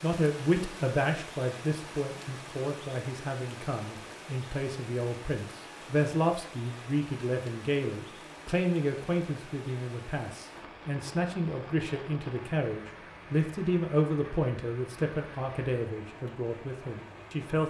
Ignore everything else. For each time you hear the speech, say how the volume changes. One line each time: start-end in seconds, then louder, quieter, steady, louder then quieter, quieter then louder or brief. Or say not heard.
0.0-17.6 steady.